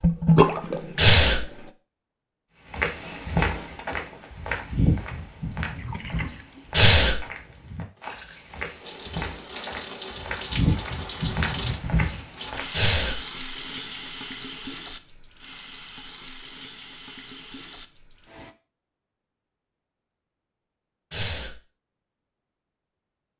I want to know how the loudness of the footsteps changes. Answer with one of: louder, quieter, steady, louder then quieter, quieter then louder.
quieter then louder.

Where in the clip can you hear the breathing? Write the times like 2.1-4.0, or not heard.
0.9-1.4, 6.7-7.2, 12.7-13.2, 21.1-21.6.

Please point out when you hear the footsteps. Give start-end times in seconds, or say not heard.
2.7-12.6.